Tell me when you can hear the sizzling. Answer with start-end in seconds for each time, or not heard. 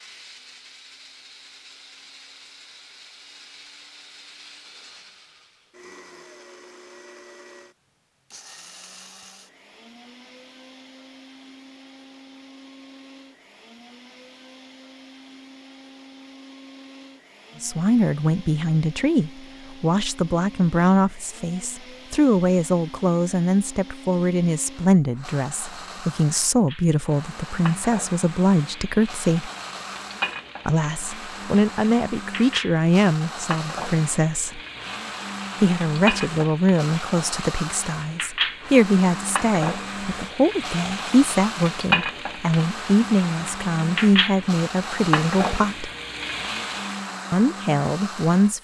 26.6-47.1.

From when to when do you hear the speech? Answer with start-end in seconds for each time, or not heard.
17.6-29.5, 30.6-34.6, 35.6-45.9, 47.3-48.6.